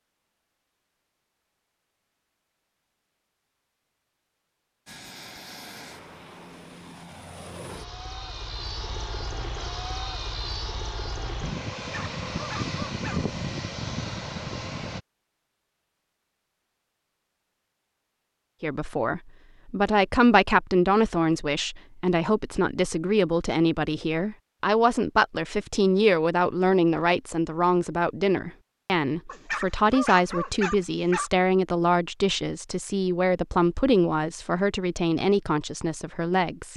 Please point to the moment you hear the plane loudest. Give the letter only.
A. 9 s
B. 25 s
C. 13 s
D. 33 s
C.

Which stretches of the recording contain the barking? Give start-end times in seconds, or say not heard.
11.8-13.2, 29.2-31.3.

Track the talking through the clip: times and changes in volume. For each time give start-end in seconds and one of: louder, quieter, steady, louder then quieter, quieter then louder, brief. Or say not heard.
18.6-36.7 steady.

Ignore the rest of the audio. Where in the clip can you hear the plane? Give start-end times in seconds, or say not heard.
4.8-15.0.